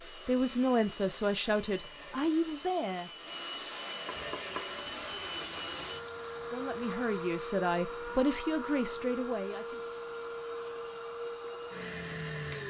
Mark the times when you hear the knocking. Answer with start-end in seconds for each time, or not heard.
4.0-4.8.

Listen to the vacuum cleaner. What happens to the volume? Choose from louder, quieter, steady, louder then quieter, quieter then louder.
louder.